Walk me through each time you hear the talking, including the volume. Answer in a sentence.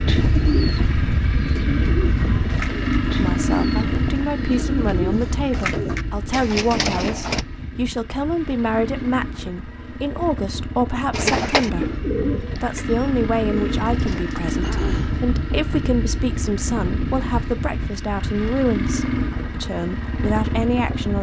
The talking can be heard from 3.1 to 21.1 s, at a steady volume.